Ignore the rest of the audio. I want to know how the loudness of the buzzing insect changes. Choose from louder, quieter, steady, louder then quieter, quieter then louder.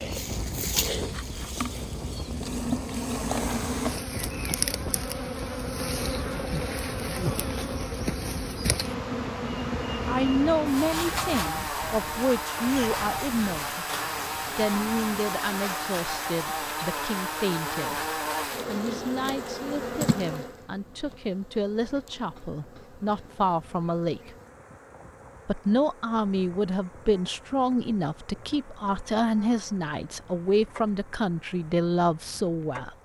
quieter.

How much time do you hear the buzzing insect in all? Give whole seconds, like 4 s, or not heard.
33 s.